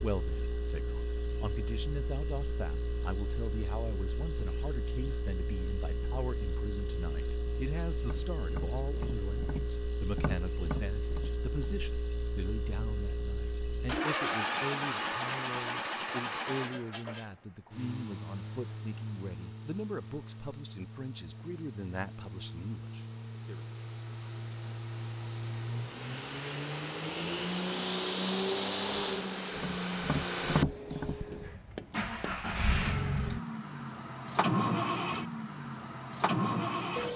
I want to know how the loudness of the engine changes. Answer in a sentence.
The volume of the engine goes up.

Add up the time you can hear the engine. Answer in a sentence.
You can hear the engine for 37 seconds altogether.